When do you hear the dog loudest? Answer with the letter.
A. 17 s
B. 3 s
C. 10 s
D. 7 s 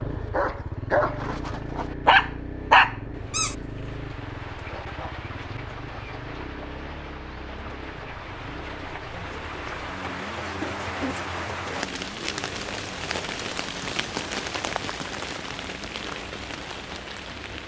B.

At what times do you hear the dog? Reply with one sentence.
You can hear the dog from 0.0 to 3.5 s.